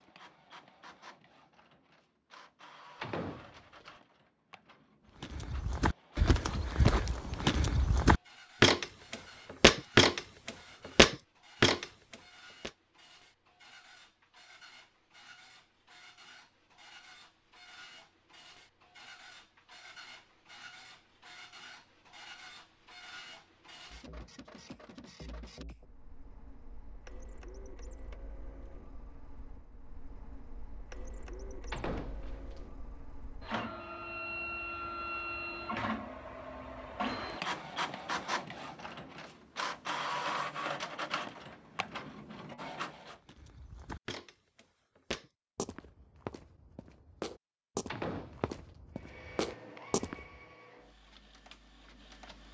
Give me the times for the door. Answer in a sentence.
You can hear the door from 3.0 to 3.9 s, from 31.7 to 32.6 s and from 47.9 to 48.5 s.